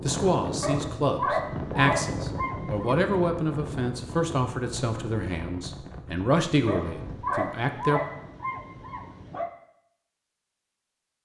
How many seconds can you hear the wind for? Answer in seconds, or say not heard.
7 s.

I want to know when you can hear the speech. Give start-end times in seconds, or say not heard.
0.0-8.0.